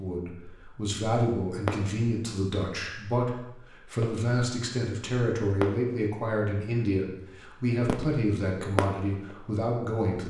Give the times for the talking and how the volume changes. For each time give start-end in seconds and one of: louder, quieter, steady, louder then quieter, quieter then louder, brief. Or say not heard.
0.0-10.2 steady.